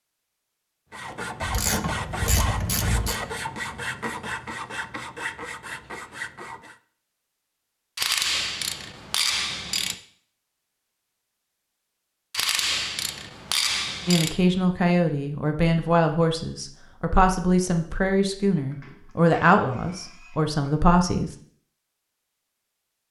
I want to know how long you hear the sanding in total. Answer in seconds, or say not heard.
6 s.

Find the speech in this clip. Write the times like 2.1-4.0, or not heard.
14.1-21.4.